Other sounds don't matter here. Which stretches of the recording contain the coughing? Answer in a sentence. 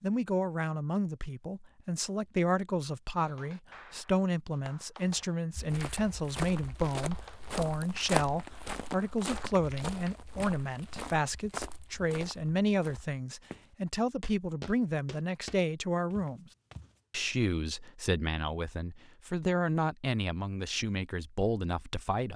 You can't hear the coughing here.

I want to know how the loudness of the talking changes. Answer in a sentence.
The volume of the talking stays about the same.